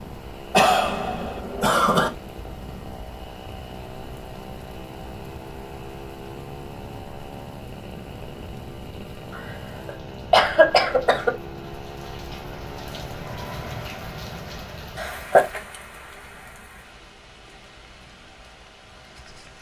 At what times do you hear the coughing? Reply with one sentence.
The coughing can be heard from 0.5 to 2.1 s, from 9.3 to 11.3 s and from 14.9 to 15.6 s.